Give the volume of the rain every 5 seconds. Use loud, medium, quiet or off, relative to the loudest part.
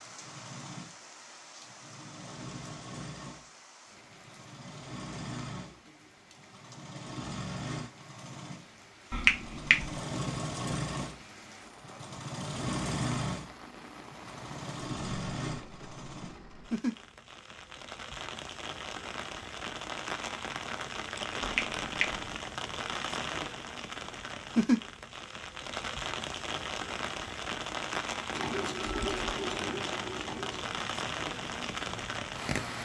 quiet, quiet, quiet, medium, loud, loud, loud.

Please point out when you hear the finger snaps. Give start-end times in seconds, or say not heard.
9.1-9.9, 21.4-22.2.